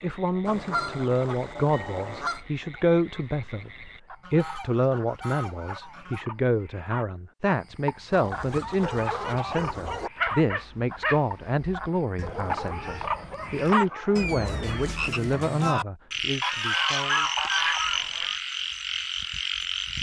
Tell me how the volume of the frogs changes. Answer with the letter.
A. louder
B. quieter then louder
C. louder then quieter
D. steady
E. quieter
A.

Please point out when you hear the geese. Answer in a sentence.
You can hear the geese from 0.5 to 2.4 s, from 4.2 to 6.2 s, from 8.1 to 10.1 s, from 12.2 to 13.8 s and from 16.4 to 18.4 s.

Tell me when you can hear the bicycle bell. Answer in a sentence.
You can't hear the bicycle bell here.